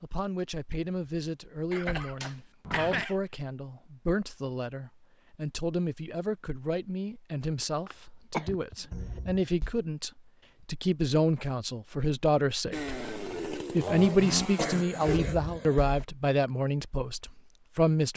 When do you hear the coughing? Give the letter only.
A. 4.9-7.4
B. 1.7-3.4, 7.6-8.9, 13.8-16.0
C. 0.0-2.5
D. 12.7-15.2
B.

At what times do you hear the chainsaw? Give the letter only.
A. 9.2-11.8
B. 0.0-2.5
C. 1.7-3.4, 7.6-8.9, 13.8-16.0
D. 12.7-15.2
D.